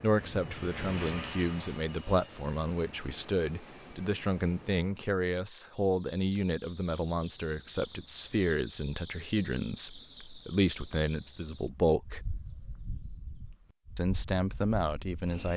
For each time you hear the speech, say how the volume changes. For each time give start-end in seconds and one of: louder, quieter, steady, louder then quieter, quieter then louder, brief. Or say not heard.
0.0-12.2 steady
13.9-15.5 brief.